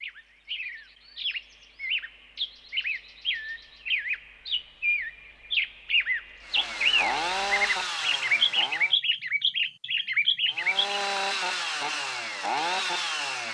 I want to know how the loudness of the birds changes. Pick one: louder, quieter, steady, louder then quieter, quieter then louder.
louder.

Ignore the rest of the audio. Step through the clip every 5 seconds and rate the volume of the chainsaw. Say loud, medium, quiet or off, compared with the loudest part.
off, loud, loud.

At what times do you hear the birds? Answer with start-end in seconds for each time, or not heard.
0.0-11.0.